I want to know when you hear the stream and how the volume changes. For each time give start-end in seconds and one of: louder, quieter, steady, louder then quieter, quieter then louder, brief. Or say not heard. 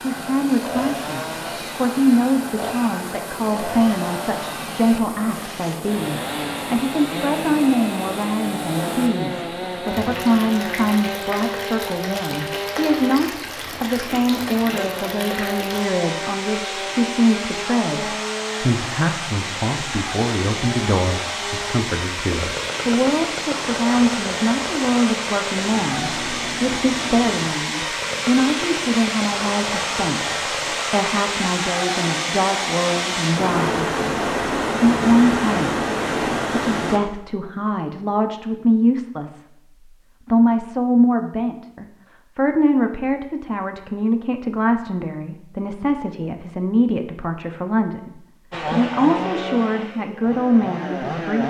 0.0-37.0 louder.